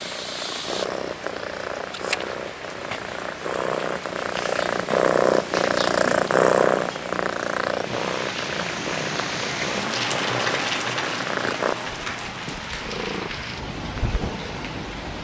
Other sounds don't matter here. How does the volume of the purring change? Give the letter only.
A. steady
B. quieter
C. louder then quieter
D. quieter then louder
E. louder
C.